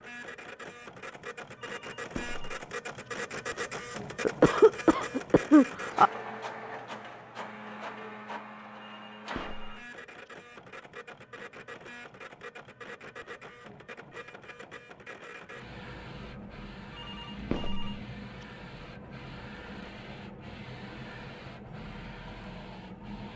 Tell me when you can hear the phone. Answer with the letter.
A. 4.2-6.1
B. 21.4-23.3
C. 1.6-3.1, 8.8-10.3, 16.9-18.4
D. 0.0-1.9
C.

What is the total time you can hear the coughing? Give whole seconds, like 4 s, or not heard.
2 s.